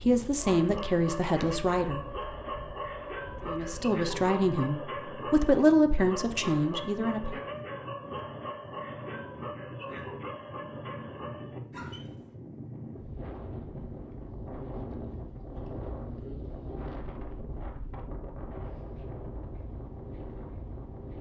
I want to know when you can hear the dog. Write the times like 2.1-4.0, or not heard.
0.3-12.3.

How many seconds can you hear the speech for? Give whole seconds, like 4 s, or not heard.
6 s.